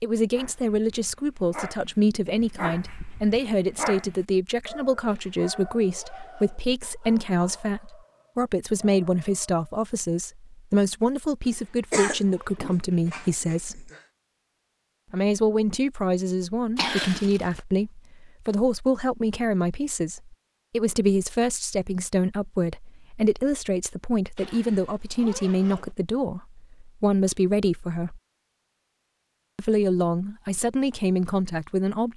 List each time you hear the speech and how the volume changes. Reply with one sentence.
You can hear the speech from 0.0 to 13.9 s, at a steady volume; from 15.1 to 28.2 s, at a steady volume; and briefly from 29.6 to 32.1 s.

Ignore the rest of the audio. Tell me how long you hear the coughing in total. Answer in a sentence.
You can hear the coughing for 3 seconds altogether.